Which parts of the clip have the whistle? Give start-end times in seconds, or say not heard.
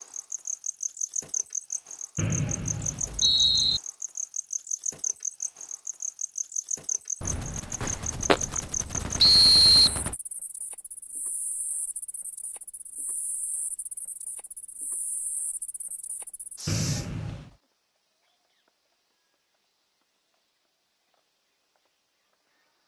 2.1-3.8, 9.2-9.9, 16.6-17.5.